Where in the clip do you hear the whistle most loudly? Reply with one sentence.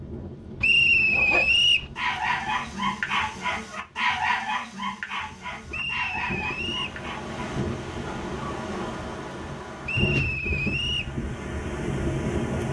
The volume of the whistle peaks at 1 second.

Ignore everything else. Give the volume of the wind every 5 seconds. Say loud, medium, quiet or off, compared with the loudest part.
quiet, medium, loud.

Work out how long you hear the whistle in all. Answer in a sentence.
You can hear the whistle for 4 seconds altogether.